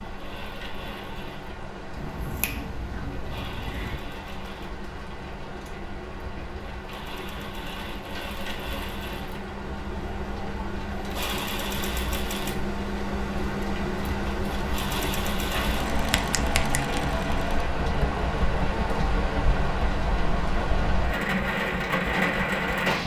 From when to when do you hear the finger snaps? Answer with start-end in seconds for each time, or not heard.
1.9-4.0, 15.3-17.0.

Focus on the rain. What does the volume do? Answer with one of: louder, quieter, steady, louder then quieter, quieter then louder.
louder.